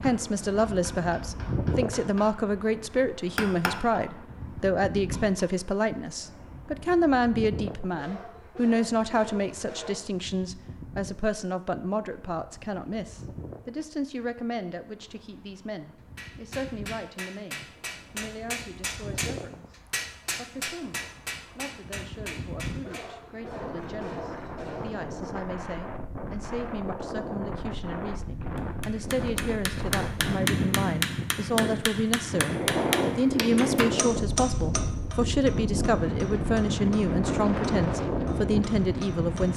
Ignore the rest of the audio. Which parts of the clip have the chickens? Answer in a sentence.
You can't hear the chickens here.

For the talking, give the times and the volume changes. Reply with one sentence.
You can hear the talking from 0.0 to 39.5 s, getting quieter then louder.